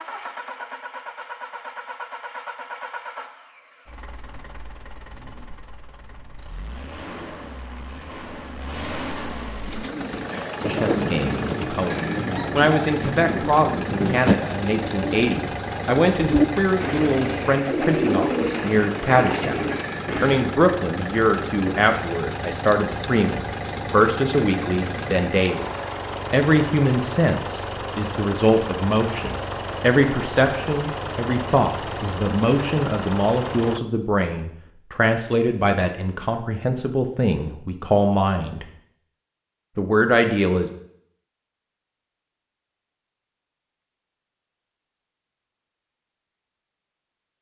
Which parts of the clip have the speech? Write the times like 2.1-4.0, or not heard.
10.6-25.7, 26.3-38.6, 39.8-40.7.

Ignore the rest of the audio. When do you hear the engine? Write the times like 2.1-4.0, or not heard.
0.0-33.8.